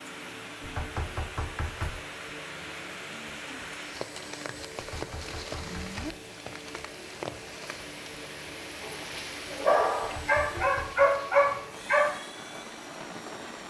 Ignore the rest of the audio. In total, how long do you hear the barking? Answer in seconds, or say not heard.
3 s.